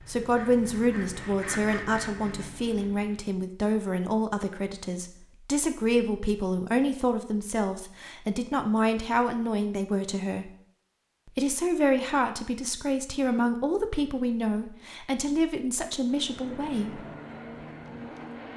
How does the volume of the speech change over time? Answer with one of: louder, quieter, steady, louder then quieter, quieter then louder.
steady.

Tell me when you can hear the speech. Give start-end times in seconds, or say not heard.
0.1-10.5, 11.2-17.0.